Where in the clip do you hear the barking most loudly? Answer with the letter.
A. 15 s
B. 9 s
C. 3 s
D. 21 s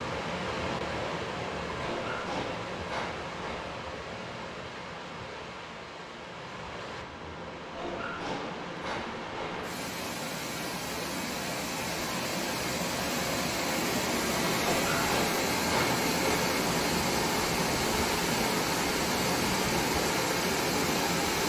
A.